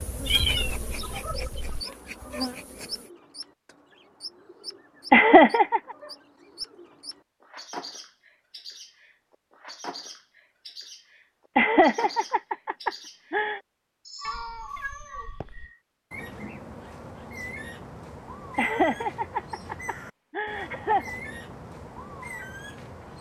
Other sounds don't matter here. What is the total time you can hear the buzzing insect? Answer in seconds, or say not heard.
3 s.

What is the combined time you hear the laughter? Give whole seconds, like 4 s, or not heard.
5 s.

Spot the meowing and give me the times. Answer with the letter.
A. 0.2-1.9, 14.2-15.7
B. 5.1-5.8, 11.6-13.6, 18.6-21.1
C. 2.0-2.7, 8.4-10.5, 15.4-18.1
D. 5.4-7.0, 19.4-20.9
A.